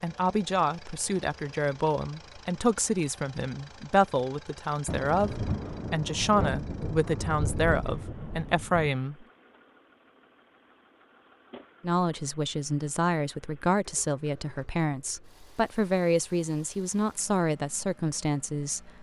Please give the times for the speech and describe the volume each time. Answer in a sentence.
The speech can be heard from 0.0 to 9.2 s, at a steady volume; and from 11.8 to 18.9 s, at a steady volume.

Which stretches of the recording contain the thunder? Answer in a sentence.
You can hear the thunder from 4.8 to 8.9 s.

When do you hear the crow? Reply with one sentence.
You can't hear the crow here.